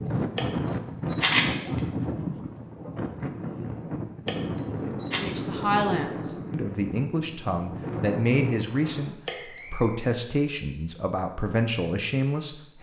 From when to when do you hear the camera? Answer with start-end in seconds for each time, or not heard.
0.3-1.8, 4.2-5.2, 9.2-9.8.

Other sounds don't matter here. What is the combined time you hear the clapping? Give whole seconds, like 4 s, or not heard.
not heard.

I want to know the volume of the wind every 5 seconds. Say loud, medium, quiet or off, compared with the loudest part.
loud, loud, off.